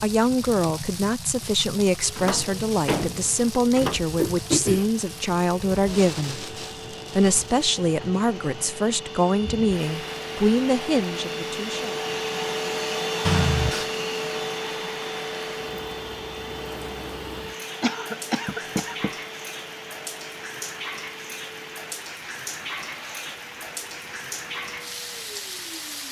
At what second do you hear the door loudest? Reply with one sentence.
The volume of the door peaks at 3 seconds.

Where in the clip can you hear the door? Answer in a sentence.
You can hear the door from 2.1 to 4.2 s and from 18.4 to 19.1 s.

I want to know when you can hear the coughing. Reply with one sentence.
The coughing can be heard from 4.2 to 4.8 s, from 13.2 to 13.9 s and from 17.8 to 18.9 s.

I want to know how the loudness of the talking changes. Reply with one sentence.
The volume of the talking stays about the same.